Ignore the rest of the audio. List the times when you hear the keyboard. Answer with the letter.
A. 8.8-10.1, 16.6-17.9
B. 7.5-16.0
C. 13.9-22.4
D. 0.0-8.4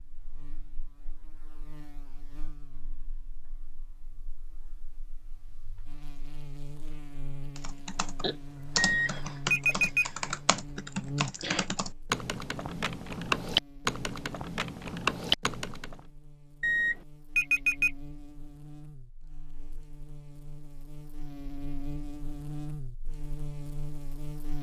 B.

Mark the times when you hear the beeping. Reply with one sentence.
You can hear the beeping from 8.8 to 10.1 s and from 16.6 to 17.9 s.